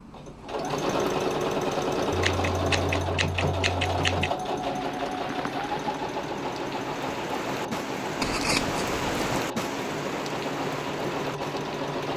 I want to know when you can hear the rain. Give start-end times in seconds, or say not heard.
4.6-12.1.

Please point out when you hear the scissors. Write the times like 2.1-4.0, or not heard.
2.1-4.3, 8.2-9.4.